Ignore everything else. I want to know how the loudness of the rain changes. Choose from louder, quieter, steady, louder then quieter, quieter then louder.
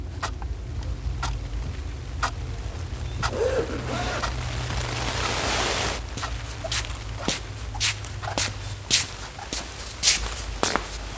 louder then quieter.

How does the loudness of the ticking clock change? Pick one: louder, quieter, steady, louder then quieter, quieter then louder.
quieter.